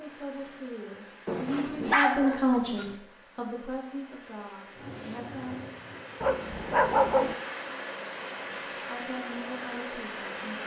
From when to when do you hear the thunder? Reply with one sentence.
The thunder can be heard from 4.7 to 6.2 s.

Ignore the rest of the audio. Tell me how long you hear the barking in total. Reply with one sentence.
The barking can be heard for 3 seconds in total.